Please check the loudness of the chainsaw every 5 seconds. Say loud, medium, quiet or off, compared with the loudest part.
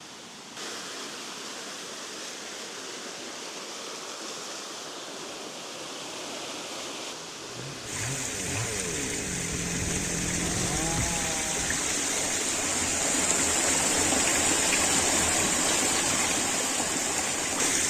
off, loud, loud, off.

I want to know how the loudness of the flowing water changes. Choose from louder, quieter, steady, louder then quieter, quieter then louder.
louder.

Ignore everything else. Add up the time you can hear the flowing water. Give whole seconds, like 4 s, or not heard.
18 s.